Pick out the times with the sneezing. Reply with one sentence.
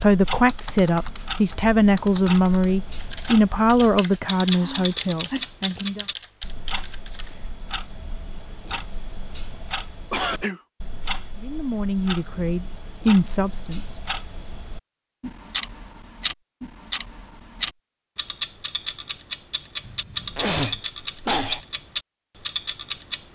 The sneezing can be heard from 4.5 to 5.5 s, from 10.1 to 10.6 s and from 19.9 to 21.6 s.